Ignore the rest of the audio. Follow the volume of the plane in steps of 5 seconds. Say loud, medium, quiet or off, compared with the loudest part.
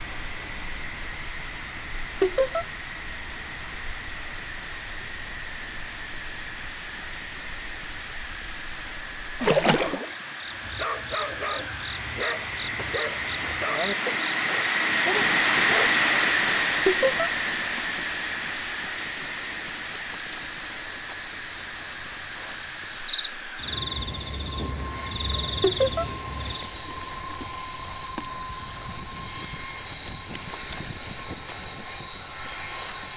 quiet, quiet, medium, loud, quiet, quiet, quiet.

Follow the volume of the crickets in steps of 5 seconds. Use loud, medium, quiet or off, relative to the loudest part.
medium, medium, medium, medium, loud, loud, loud.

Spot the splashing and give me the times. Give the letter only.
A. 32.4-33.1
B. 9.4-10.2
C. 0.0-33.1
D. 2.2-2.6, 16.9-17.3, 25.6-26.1
B.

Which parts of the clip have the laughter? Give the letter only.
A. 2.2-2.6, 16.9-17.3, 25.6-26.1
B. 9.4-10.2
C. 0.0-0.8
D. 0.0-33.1
A.